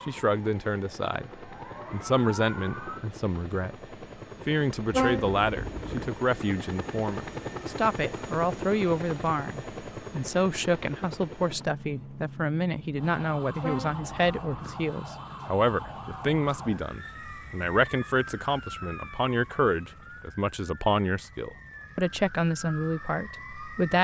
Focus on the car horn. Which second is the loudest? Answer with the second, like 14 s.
5 s.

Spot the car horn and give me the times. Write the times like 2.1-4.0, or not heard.
4.9-6.1, 13.6-14.8.